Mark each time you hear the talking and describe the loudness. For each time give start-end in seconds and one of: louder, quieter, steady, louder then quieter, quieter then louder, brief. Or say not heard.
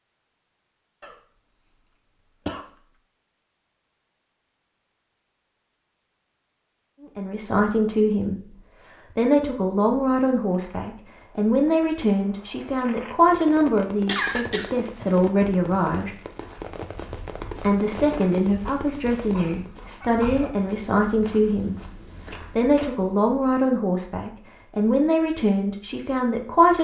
7.2-16.1 steady
17.6-26.7 steady.